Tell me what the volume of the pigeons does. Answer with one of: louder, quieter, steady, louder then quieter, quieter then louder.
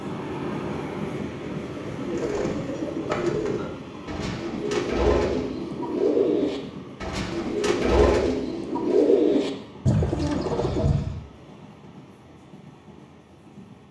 louder.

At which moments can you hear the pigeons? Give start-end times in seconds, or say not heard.
1.6-11.1.